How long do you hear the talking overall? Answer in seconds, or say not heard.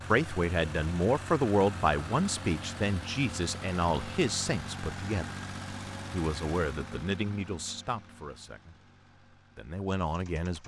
9 s.